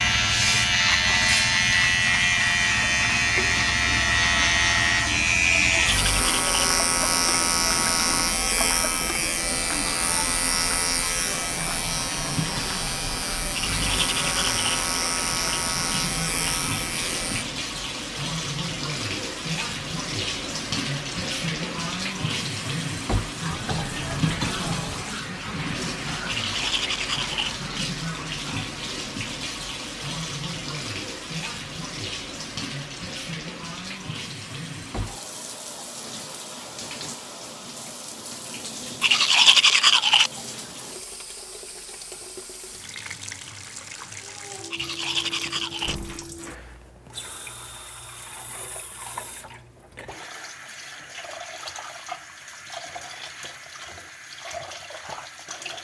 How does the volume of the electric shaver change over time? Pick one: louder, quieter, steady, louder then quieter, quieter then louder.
quieter.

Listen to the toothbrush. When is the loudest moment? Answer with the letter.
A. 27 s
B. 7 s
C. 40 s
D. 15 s
C.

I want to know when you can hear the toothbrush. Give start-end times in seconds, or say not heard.
5.6-6.7, 13.5-14.7, 26.2-27.6, 39.0-40.3, 44.7-46.0.